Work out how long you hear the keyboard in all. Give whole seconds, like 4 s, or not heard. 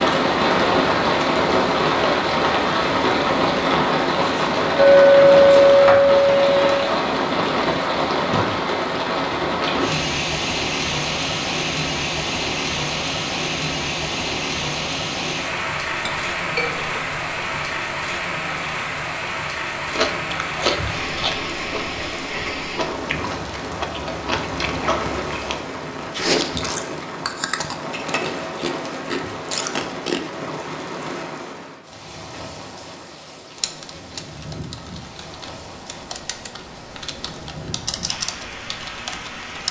6 s.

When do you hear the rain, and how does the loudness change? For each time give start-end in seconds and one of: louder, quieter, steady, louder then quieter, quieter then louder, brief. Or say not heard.
0.0-39.6 quieter.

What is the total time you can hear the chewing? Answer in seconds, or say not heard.
10 s.